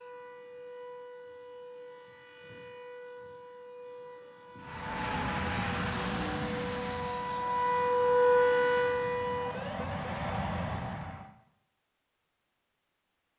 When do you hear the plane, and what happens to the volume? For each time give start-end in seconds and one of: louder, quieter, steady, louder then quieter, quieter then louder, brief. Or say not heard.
4.6-11.3 quieter then louder.